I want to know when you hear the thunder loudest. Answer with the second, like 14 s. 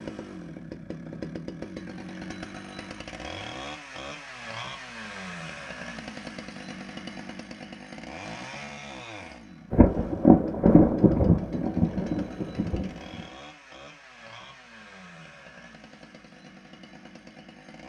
10 s.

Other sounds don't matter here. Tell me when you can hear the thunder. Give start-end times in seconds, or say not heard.
9.7-13.2.